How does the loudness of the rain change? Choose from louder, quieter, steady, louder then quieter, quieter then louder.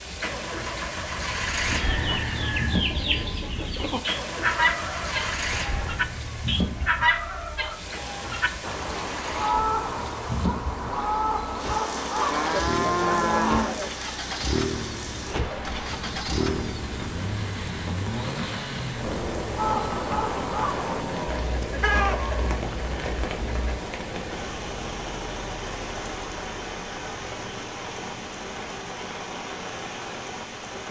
steady.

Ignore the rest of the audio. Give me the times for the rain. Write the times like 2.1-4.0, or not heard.
0.0-30.8.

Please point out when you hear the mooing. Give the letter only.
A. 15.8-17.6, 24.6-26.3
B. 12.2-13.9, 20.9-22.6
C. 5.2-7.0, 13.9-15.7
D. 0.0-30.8
B.